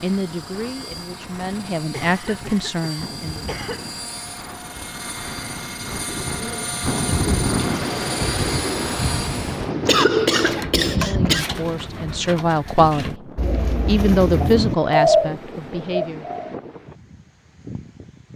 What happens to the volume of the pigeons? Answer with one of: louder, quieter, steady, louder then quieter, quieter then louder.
louder.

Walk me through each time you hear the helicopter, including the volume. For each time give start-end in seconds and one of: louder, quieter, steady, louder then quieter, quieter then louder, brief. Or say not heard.
0.0-9.7 louder.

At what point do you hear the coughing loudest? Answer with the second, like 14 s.
10 s.